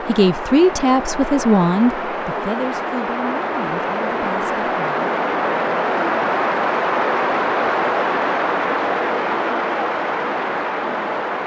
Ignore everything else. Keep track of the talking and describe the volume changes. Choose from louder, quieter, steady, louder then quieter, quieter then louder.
quieter.